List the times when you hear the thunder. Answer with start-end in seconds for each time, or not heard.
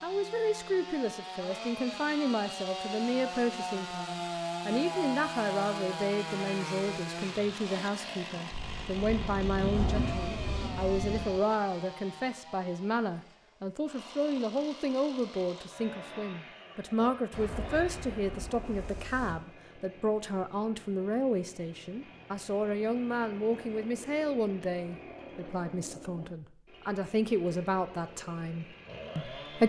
8.5-11.4, 17.3-19.4.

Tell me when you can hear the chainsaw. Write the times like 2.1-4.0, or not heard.
0.0-29.6.